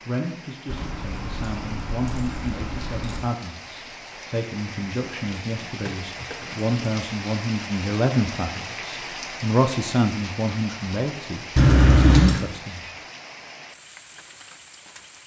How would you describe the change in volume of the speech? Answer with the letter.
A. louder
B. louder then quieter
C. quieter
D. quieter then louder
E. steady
A.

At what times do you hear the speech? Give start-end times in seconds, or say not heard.
0.1-12.8.